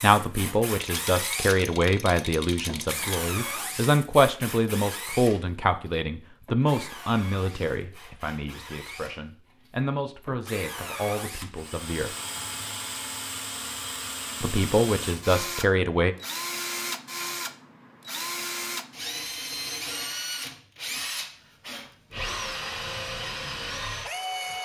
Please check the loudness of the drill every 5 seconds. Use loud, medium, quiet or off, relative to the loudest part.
loud, medium, loud, loud, loud.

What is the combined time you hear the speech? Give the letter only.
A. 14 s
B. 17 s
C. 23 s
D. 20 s
A.